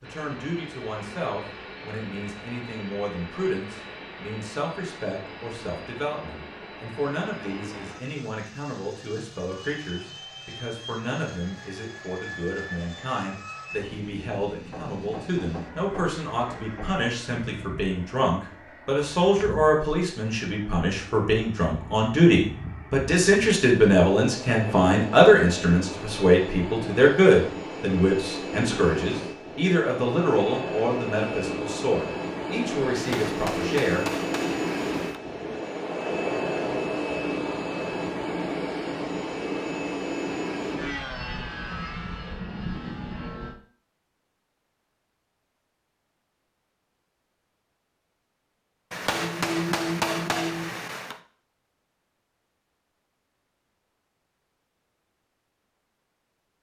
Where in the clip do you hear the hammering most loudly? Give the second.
50 s.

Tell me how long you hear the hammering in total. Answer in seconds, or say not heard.
7 s.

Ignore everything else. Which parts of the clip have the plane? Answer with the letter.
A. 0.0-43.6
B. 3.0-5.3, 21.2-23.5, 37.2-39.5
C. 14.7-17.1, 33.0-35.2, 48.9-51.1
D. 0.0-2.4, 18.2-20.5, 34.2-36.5
A.